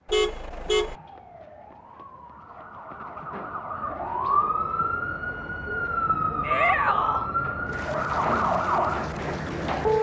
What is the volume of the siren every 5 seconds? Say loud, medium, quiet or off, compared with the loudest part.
medium, loud.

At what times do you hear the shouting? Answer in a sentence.
The shouting can be heard from 6.4 to 7.3 s.